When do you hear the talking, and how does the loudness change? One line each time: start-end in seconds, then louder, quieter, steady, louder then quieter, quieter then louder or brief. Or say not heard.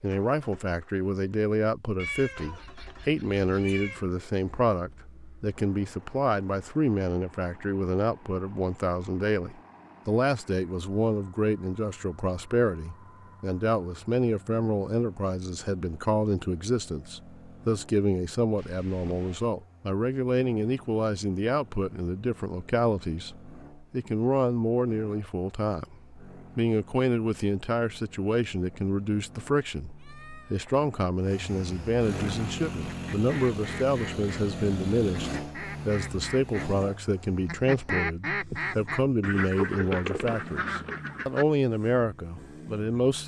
0.0-43.2 steady.